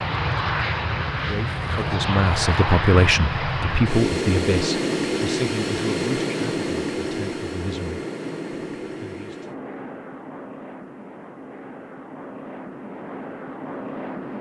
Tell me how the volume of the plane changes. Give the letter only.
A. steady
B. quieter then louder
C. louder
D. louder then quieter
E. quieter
E.